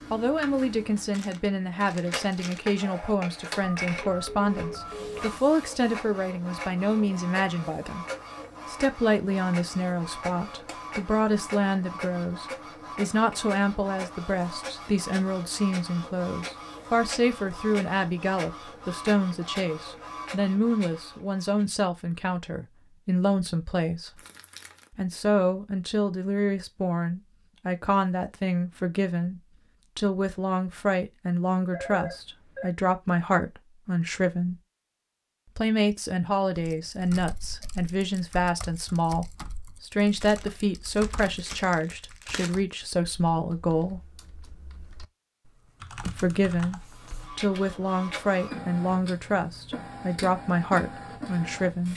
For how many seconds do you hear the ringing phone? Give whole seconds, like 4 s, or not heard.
3 s.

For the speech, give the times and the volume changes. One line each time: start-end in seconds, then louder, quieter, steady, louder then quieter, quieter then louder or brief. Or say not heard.
0.1-8.1 steady
8.7-24.2 steady
24.9-34.6 steady
35.5-44.0 steady
46.0-51.9 steady.